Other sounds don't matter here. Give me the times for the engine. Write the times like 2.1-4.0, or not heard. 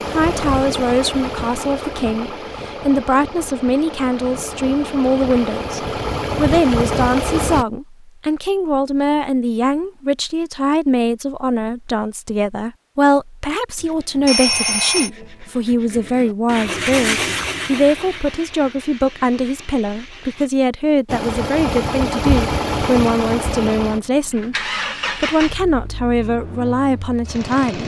0.0-7.7, 21.1-27.8.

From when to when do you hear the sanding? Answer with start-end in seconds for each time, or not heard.
13.8-20.6.